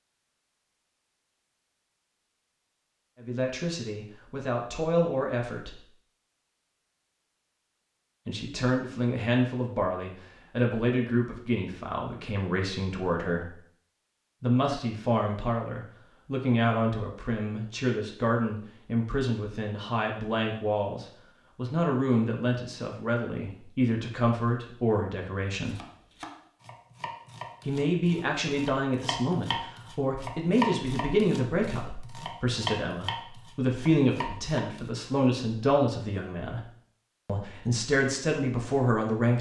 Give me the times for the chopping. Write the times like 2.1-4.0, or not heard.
25.6-34.9.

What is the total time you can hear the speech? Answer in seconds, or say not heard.
30 s.